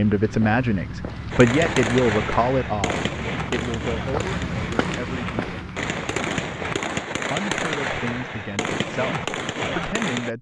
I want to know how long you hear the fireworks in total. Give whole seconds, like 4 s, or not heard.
9 s.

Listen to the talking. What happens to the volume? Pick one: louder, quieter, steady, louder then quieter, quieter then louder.
quieter.